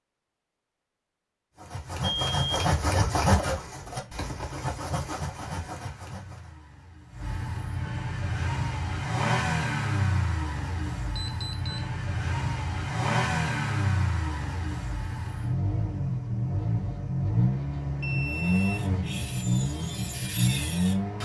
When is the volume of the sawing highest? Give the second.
3 s.